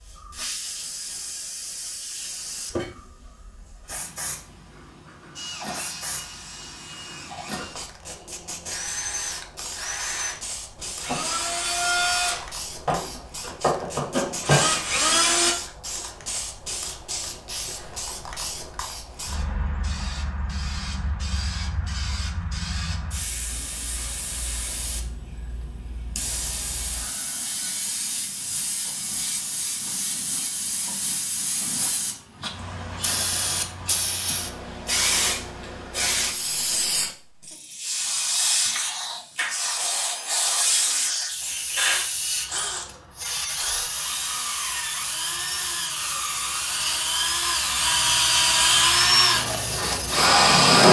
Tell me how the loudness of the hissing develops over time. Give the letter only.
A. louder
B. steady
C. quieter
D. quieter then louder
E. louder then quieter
A.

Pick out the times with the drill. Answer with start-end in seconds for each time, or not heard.
5.3-15.6, 38.8-50.8.